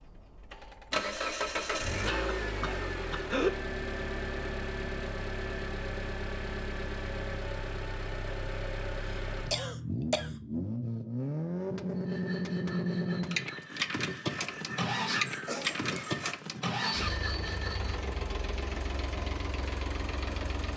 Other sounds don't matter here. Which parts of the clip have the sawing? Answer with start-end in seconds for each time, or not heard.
11.9-17.9.